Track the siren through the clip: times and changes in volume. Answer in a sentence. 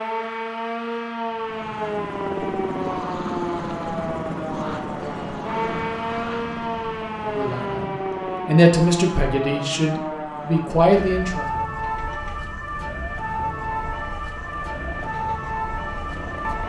You can hear the siren from 0.0 to 16.6 s, at a steady volume.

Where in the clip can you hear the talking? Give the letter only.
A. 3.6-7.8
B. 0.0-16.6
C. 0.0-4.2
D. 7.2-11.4
D.